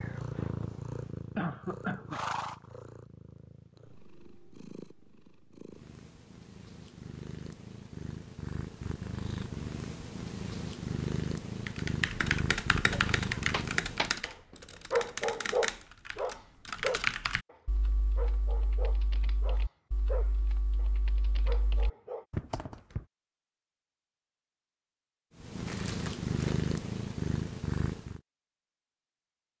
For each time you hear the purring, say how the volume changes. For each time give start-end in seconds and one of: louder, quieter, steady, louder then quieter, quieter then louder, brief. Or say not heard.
0.0-14.2 quieter then louder
25.4-28.2 brief.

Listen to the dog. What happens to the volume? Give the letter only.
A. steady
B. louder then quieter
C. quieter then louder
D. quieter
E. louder
D.